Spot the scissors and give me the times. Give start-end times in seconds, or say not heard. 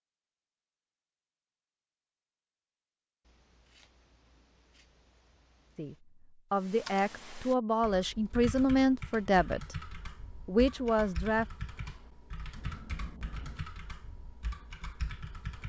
3.2-6.0, 12.6-13.7.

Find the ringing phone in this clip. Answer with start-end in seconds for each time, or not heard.
not heard.